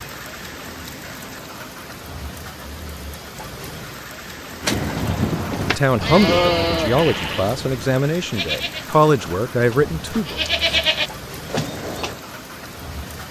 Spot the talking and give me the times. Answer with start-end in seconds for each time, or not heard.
5.7-10.4.